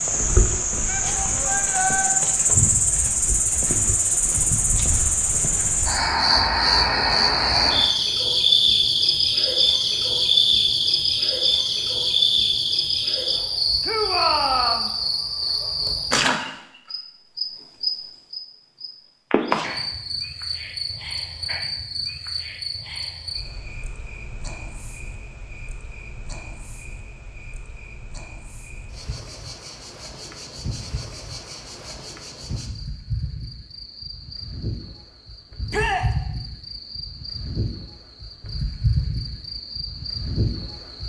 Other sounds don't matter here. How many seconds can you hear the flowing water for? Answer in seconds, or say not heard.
not heard.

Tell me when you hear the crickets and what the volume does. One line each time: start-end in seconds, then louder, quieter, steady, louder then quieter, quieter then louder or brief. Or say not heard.
0.0-41.0 quieter then louder.